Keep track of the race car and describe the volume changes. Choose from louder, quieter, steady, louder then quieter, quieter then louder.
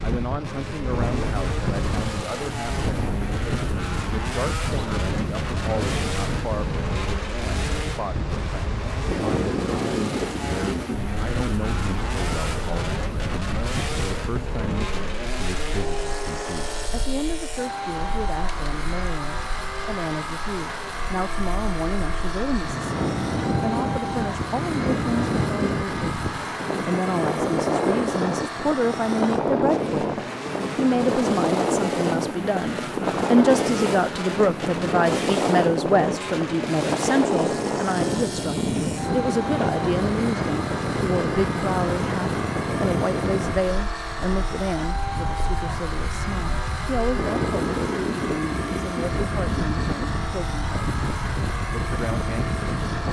steady.